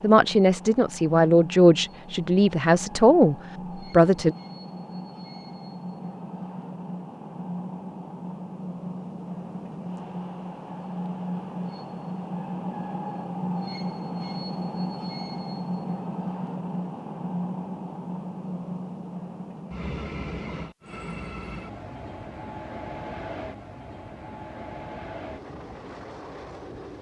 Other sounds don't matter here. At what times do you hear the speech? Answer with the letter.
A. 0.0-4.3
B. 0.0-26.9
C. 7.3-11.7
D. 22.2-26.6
A.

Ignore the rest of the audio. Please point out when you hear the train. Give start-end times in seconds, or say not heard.
0.0-26.9.